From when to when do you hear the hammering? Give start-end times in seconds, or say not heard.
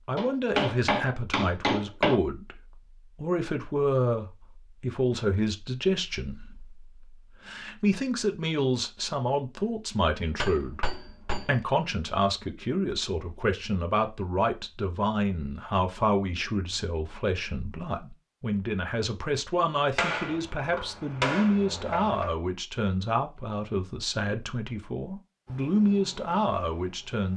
0.1-2.2, 10.2-11.6, 19.9-22.4.